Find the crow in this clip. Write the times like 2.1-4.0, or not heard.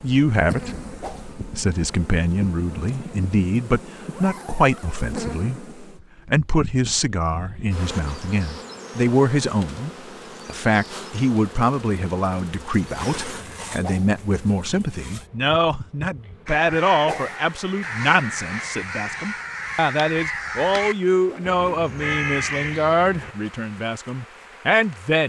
16.4-23.4.